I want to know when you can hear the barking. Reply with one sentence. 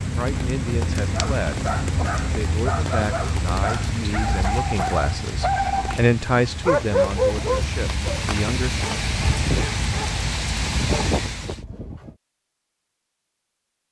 You can hear the barking from 1.1 to 12.2 s.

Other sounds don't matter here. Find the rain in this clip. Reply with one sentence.
The rain can be heard from 0.0 to 11.6 s.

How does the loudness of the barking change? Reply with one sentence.
The volume of the barking goes up, then down.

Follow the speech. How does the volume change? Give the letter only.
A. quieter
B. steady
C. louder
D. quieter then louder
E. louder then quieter
E.